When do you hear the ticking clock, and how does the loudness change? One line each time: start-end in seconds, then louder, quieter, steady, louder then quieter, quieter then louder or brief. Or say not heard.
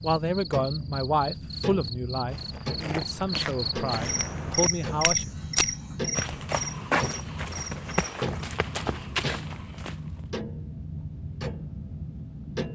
0.0-12.7 steady.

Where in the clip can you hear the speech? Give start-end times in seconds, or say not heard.
0.0-5.2.